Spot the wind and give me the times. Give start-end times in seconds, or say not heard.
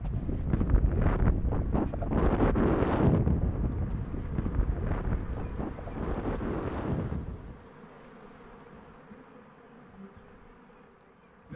0.0-7.7.